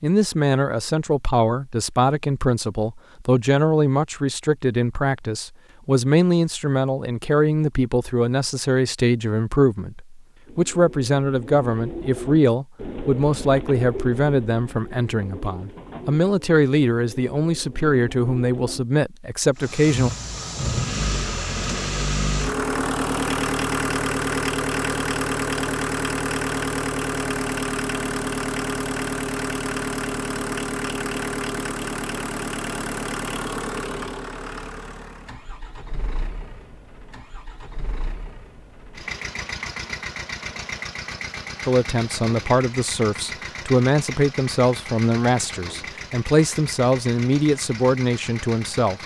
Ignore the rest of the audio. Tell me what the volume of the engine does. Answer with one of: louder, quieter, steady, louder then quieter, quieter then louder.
quieter.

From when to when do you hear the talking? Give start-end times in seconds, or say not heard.
0.0-20.1, 41.6-49.0.